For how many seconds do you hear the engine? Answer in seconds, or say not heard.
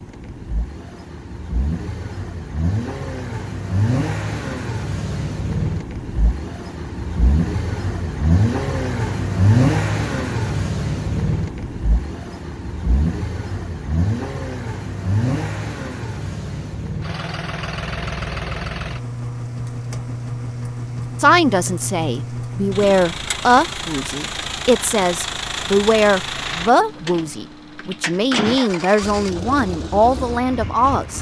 31 s.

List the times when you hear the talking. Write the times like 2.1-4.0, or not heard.
21.2-31.1.